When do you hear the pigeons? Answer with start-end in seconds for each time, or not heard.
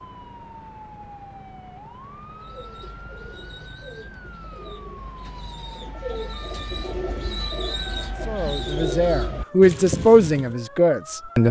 2.3-10.6.